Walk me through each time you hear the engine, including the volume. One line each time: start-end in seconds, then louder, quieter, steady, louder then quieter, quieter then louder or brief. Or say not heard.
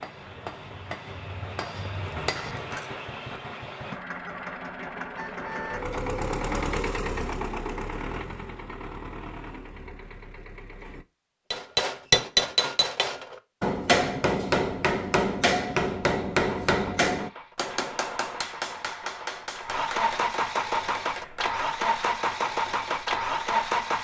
0.0-11.1 louder then quieter
16.7-23.9 louder.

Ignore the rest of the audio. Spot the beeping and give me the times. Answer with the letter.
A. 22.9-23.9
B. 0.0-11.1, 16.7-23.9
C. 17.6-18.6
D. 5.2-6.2
D.